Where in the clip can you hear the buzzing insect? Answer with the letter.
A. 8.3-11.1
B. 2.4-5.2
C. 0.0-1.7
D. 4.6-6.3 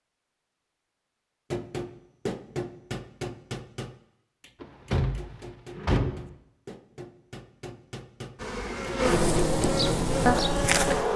A.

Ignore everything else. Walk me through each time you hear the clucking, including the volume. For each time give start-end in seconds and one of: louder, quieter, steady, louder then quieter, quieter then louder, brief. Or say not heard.
not heard.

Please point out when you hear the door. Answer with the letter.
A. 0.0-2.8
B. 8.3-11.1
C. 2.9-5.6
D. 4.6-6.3
D.